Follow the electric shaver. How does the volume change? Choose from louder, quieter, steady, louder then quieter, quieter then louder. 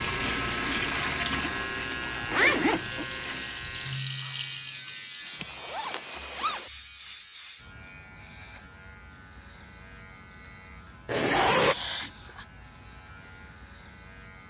quieter.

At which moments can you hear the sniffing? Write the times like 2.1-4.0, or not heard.
11.6-12.4.